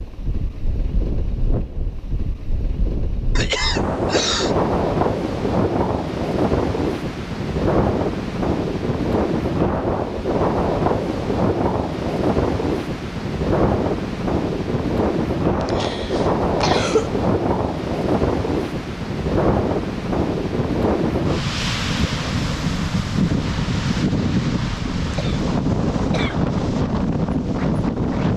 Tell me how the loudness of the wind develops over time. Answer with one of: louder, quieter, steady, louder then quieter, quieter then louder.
steady.